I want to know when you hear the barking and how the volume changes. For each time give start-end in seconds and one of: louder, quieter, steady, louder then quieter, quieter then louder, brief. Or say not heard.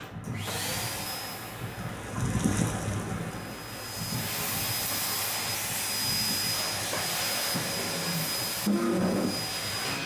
not heard.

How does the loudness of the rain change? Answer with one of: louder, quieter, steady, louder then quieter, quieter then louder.
louder then quieter.